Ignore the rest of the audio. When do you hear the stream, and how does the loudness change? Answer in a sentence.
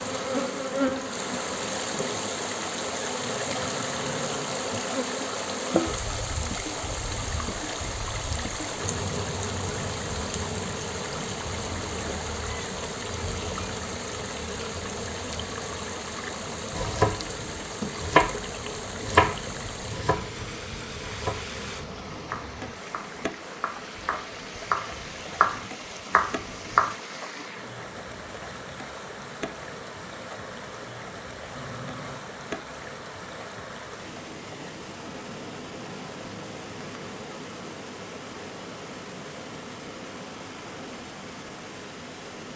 You can hear the stream from 0.0 to 42.5 s, getting quieter.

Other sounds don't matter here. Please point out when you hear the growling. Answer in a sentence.
You can hear the growling from 3.1 to 4.6 s and from 31.5 to 32.2 s.